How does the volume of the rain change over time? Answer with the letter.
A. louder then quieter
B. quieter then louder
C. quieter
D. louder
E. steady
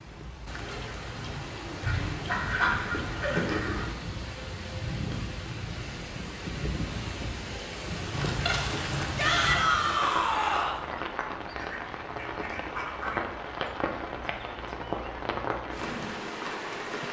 E.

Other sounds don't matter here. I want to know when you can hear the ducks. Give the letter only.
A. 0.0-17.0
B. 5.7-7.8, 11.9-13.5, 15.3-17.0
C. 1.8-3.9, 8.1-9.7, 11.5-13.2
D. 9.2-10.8
C.